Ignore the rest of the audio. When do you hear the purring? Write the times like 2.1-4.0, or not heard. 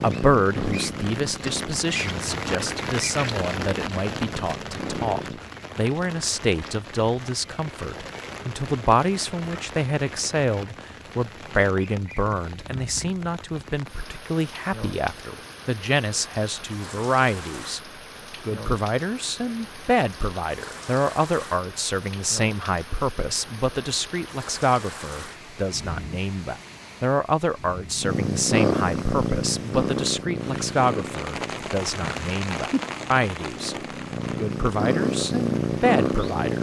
0.0-5.4, 28.0-36.5.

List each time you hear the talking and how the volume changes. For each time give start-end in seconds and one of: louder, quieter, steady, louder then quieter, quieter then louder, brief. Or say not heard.
0.0-17.8 steady
18.4-33.8 steady
34.4-36.5 brief.